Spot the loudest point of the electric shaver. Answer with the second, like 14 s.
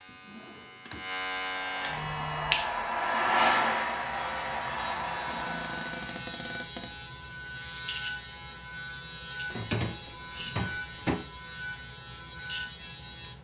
2 s.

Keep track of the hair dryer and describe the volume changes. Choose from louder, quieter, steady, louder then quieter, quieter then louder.
louder then quieter.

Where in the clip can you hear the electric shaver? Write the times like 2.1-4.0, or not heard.
0.0-13.3.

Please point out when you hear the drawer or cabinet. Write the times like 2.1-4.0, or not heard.
0.1-1.1, 5.2-7.0, 9.5-11.2.